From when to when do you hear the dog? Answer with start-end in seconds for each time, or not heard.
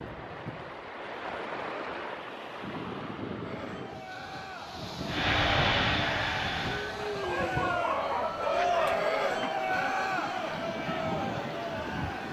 7.2-9.0.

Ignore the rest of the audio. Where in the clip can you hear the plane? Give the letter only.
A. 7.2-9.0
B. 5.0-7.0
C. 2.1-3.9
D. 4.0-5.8
B.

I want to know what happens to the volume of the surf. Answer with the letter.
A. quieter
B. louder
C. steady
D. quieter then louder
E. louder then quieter
C.